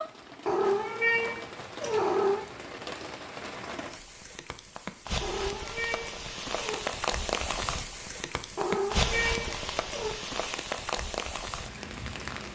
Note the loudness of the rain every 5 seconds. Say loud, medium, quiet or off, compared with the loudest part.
medium, loud, loud.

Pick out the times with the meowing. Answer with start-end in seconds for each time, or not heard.
0.5-2.5, 5.2-6.8, 8.6-10.2.